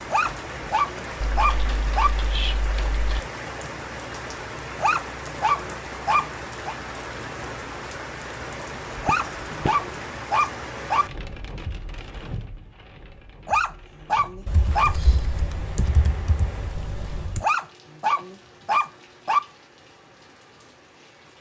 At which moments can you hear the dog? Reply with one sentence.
You can hear the dog from 0.1 to 2.1 s, from 4.8 to 6.8 s, from 9.0 to 11.1 s, from 13.4 to 14.9 s and from 17.4 to 19.4 s.